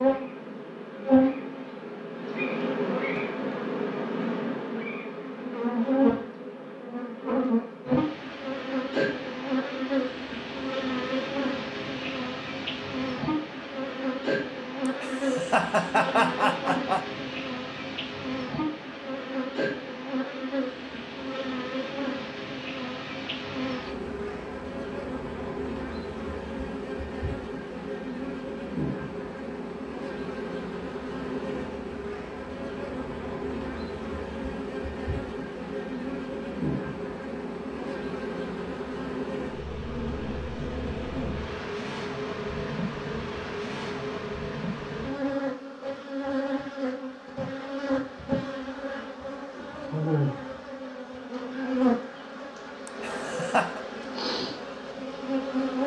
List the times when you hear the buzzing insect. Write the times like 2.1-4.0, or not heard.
0.0-55.8.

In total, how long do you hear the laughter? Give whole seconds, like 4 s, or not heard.
3 s.